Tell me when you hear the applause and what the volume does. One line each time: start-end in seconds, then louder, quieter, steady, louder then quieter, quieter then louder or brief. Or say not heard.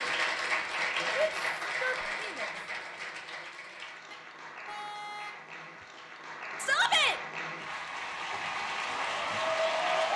0.0-10.1 quieter then louder.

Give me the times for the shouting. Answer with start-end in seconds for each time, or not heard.
1.1-2.5, 6.6-7.2.